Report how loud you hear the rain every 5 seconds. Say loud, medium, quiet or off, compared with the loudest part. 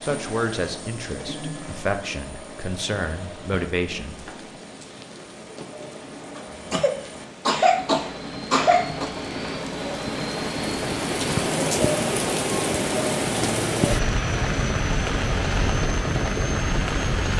quiet, quiet, loud, loud.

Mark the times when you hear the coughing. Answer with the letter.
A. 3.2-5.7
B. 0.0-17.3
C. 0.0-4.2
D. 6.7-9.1
D.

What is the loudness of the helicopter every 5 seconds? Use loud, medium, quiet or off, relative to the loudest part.
medium, medium, loud, loud.